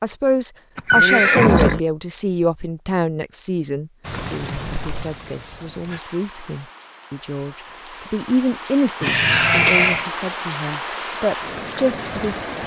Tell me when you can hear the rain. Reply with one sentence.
The rain can be heard from 4.0 to 12.6 s.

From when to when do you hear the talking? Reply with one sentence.
You can hear the talking from 0.0 to 12.4 s.